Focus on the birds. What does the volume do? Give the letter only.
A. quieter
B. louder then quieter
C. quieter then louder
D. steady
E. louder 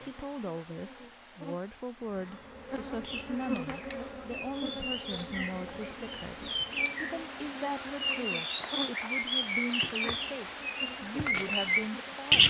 E.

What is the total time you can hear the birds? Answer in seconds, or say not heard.
9 s.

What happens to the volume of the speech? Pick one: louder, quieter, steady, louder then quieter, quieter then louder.
steady.